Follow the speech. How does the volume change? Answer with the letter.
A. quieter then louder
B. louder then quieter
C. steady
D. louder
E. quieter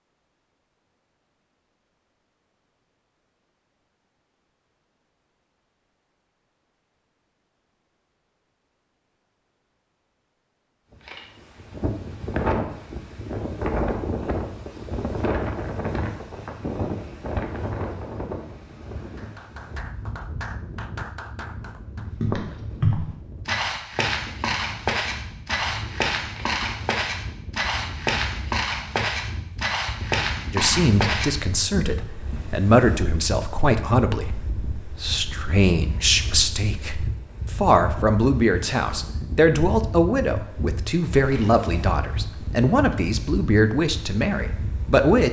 C.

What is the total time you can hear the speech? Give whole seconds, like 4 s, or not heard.
15 s.